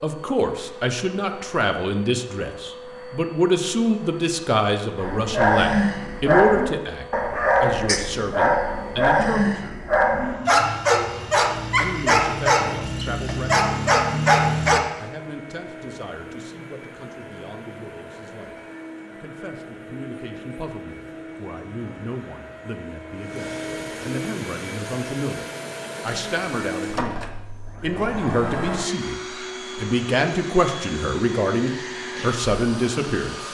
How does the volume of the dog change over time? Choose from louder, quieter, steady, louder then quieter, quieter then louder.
steady.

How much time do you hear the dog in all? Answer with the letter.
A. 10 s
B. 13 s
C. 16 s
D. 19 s
A.